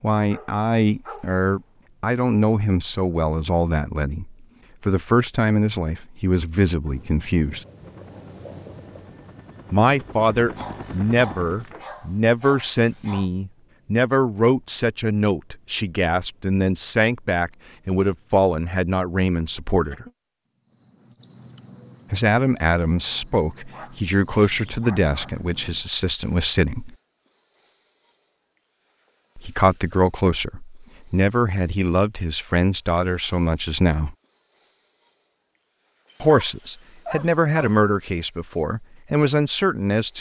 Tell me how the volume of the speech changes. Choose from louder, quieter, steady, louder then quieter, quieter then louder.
steady.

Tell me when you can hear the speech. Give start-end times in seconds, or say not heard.
0.0-7.7, 9.7-20.1, 22.1-26.9, 29.4-34.1, 36.2-40.1.